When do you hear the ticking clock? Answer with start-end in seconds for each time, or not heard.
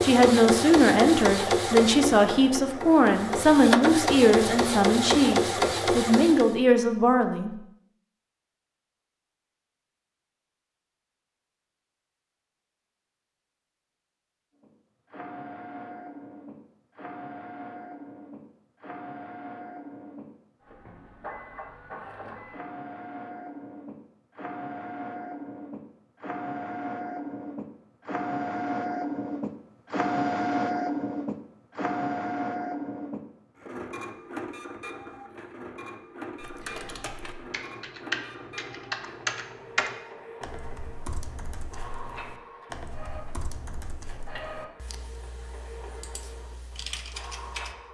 not heard.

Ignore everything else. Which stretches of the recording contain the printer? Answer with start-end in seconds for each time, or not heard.
0.0-6.5, 14.6-47.8.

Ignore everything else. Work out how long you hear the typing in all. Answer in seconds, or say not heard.
11 s.